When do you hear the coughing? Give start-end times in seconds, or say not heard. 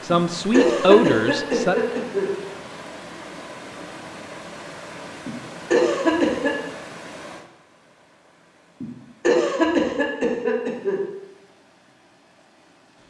0.1-2.3, 5.2-6.5, 8.8-11.0.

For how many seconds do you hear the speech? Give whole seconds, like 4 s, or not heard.
2 s.